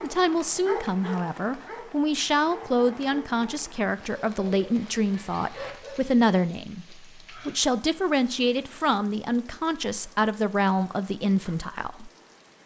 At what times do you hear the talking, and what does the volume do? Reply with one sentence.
The talking can be heard from 0.0 to 12.1 s, at a steady volume.